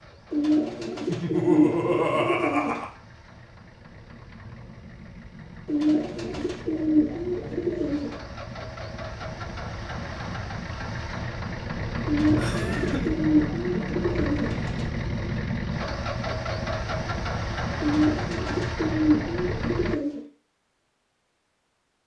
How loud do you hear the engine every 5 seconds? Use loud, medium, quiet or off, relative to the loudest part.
quiet, medium, loud, loud, off.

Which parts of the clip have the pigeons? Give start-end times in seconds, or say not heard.
0.3-2.9, 5.7-8.2, 12.1-14.8, 17.8-20.2.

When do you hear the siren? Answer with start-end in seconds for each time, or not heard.
not heard.